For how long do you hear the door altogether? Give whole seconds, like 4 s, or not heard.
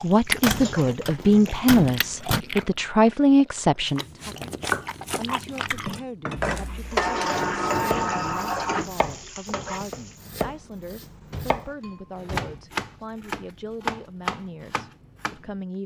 6 s.